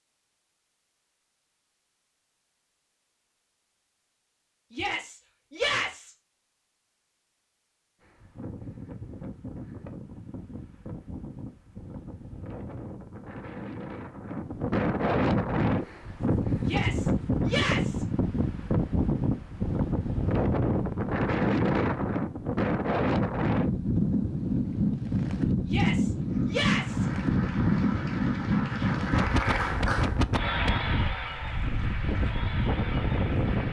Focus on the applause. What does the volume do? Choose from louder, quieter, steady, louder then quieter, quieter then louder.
louder then quieter.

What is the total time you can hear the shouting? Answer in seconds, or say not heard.
4 s.